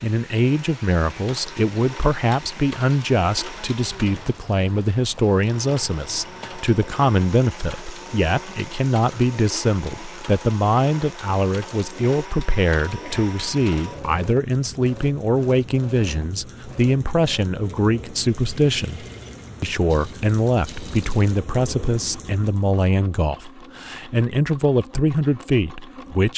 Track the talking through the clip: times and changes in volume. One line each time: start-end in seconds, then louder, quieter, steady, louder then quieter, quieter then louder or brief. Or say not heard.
0.0-26.3 steady.